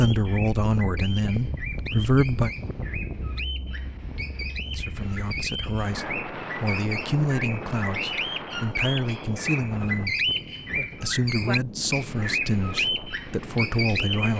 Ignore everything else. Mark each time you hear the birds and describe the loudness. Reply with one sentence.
You can hear the birds from 0.0 to 14.3 s, getting louder.